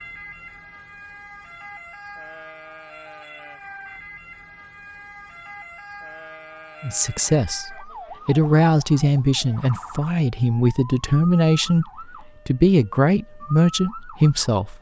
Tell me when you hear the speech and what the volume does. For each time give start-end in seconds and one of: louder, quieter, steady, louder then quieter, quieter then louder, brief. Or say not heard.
6.8-14.7 steady.